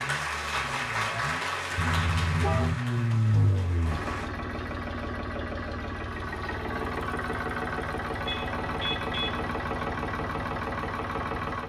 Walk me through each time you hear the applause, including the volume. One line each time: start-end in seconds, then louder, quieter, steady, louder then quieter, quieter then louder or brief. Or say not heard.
0.0-4.3 quieter.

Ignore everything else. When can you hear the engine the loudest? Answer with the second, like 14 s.
3 s.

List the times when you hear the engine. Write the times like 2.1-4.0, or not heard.
0.0-11.6.